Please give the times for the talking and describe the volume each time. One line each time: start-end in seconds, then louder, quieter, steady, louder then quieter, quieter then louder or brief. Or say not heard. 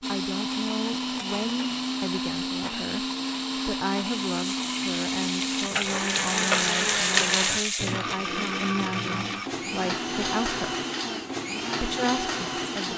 0.1-10.8 steady
11.8-12.9 brief.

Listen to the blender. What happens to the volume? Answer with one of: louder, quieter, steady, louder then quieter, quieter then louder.
steady.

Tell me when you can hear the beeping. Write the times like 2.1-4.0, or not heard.
not heard.